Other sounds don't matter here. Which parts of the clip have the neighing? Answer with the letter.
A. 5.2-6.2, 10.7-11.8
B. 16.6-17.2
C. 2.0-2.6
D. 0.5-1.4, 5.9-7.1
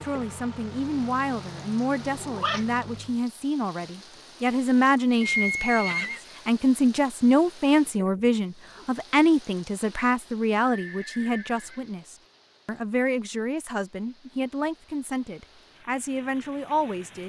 A.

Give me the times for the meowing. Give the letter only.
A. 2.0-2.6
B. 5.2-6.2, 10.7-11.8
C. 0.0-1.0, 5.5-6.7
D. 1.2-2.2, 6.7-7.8
A.